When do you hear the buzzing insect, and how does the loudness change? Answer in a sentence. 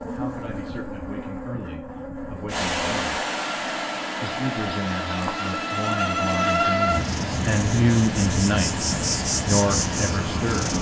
You can hear the buzzing insect from 0.0 to 10.7 s, getting louder.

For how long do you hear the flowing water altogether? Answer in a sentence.
The flowing water can be heard for 8 seconds in total.